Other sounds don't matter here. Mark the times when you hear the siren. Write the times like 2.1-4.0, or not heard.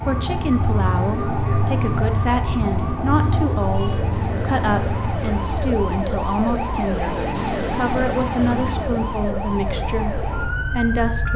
0.0-11.3.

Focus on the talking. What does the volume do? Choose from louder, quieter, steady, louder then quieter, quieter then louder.
steady.